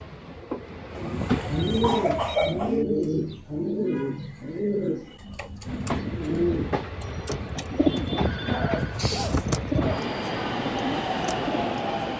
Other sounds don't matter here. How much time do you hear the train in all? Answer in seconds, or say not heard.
9 s.